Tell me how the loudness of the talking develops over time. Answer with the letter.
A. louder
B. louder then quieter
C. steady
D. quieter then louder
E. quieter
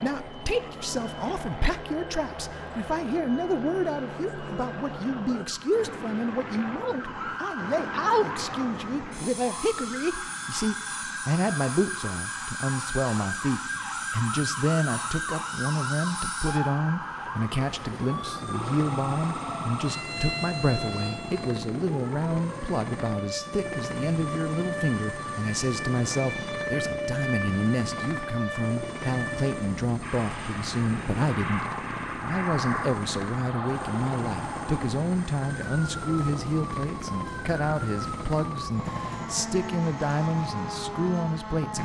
C.